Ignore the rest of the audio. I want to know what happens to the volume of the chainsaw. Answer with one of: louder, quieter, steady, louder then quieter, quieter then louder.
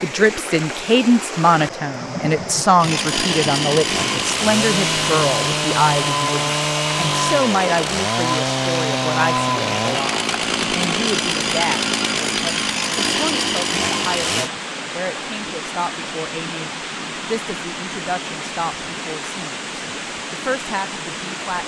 steady.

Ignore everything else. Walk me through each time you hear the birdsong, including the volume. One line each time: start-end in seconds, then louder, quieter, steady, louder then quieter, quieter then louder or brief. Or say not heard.
not heard.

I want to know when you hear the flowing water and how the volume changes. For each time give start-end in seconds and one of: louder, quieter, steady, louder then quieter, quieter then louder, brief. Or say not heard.
0.0-21.6 steady.